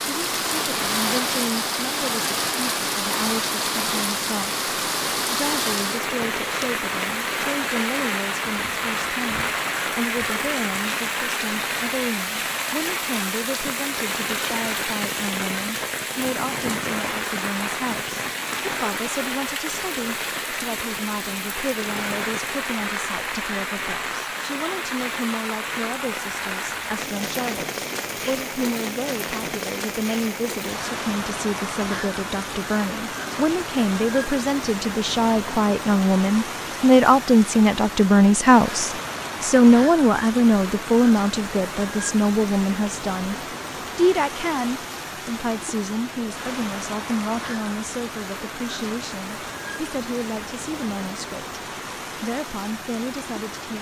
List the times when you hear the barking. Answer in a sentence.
The barking can't be heard in this clip.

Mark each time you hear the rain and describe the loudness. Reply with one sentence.
The rain can be heard from 0.0 to 53.7 s, getting quieter.